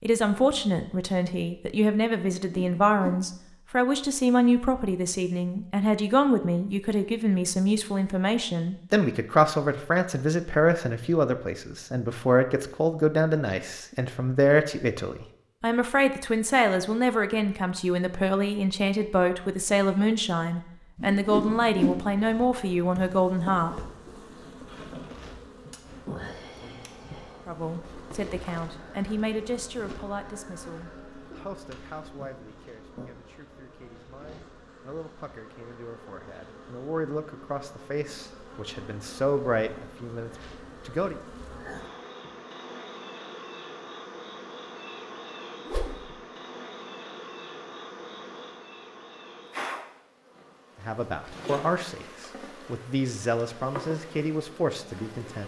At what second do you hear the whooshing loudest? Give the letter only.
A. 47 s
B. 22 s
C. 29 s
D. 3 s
B.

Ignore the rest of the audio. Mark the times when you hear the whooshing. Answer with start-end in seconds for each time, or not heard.
2.3-3.3, 20.9-22.1, 45.6-46.1.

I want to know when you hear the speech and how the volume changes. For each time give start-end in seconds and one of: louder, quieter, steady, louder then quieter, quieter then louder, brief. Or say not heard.
0.0-23.8 steady
27.4-41.1 quieter then louder
50.8-55.4 quieter then louder.